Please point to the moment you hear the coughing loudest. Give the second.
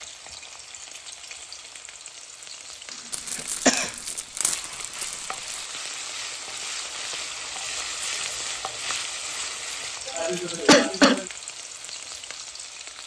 11 s.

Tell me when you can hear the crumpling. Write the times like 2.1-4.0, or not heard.
3.1-5.7.